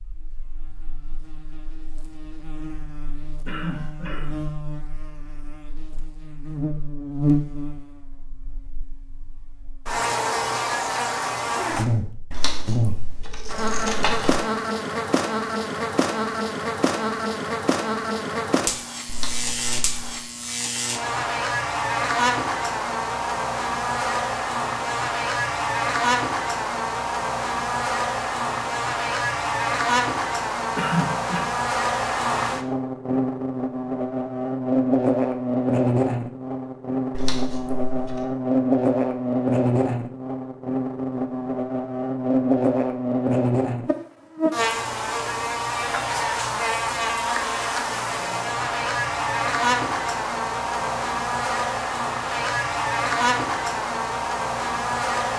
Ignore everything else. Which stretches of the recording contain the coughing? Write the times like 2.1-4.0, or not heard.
3.5-4.4, 30.8-31.4.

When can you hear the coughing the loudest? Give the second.
31 s.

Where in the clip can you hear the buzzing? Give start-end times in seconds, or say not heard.
0.0-55.3.